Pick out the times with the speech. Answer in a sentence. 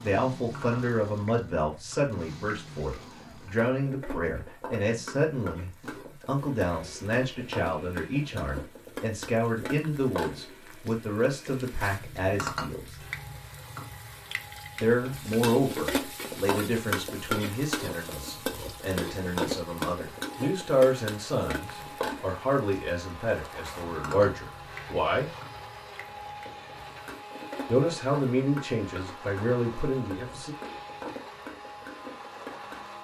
You can hear the speech from 0.0 to 12.9 s, from 14.8 to 25.3 s and from 27.6 to 30.6 s.